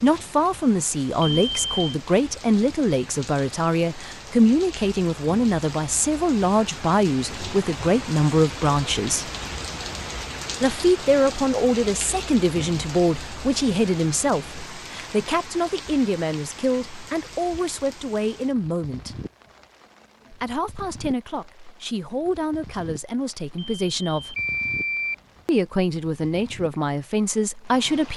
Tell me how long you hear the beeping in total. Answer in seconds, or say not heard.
2 s.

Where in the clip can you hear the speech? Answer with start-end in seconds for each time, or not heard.
0.0-9.3, 10.6-19.1, 20.3-24.4, 25.4-28.1.